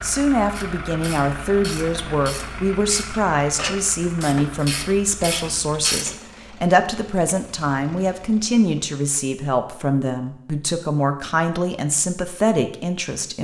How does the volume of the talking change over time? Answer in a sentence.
The volume of the talking stays about the same.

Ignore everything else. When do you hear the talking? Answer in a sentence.
The talking can be heard from 0.0 to 13.3 s.